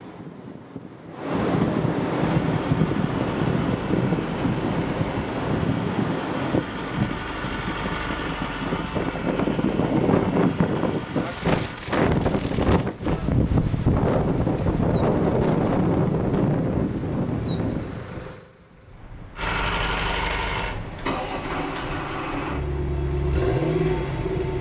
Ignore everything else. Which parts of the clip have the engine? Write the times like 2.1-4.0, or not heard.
2.2-11.8, 19.4-24.5.